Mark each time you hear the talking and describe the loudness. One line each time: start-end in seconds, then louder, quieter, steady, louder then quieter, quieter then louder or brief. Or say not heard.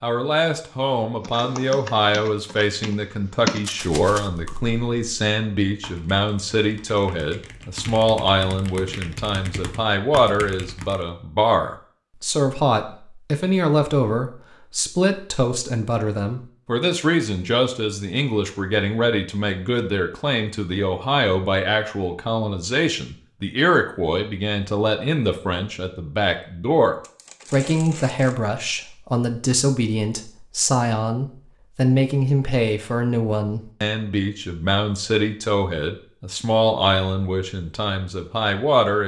0.0-39.0 steady.